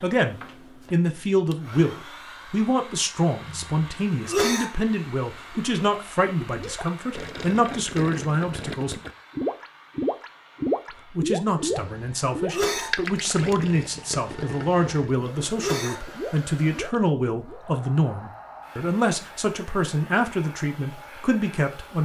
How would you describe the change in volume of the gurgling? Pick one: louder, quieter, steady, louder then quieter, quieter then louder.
louder then quieter.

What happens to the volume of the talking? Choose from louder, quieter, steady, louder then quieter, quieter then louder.
steady.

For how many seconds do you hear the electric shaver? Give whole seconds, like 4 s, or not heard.
not heard.